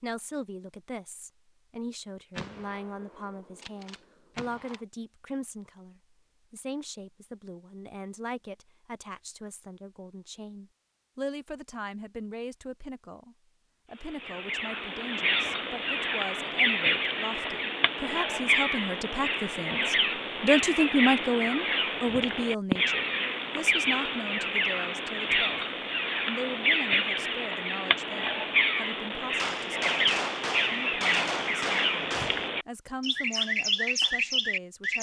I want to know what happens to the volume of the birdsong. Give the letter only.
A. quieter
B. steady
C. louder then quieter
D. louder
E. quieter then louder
B.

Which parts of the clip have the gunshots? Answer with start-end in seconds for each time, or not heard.
2.4-4.8, 29.4-32.5.